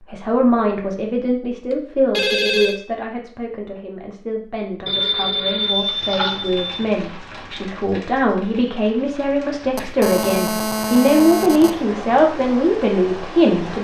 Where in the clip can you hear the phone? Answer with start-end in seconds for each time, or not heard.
1.7-2.8, 4.8-6.7, 9.8-11.7.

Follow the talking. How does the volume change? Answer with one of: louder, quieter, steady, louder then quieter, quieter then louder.
quieter then louder.